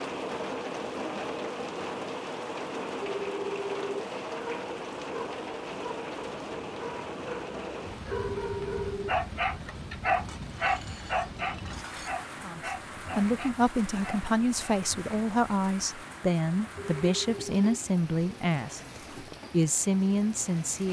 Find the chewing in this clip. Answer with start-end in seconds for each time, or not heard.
not heard.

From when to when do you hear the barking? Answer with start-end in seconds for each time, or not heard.
4.3-14.8.